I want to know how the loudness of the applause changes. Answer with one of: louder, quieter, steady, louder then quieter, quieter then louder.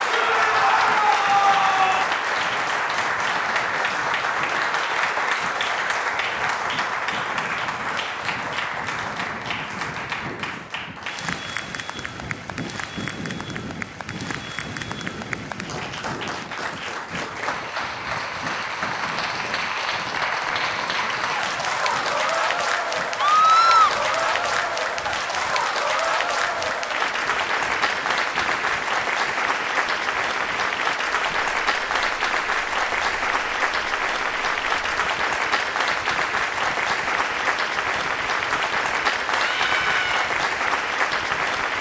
quieter then louder.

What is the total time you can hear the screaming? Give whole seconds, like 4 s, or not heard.
4 s.